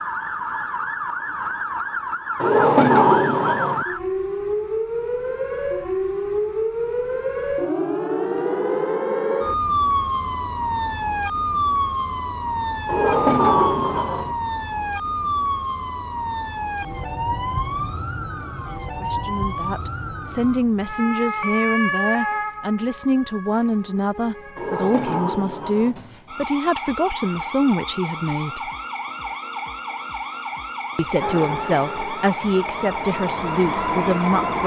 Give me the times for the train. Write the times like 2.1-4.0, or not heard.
31.2-34.6.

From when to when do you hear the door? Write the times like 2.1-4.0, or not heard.
2.4-3.9, 12.8-14.3, 24.6-26.0.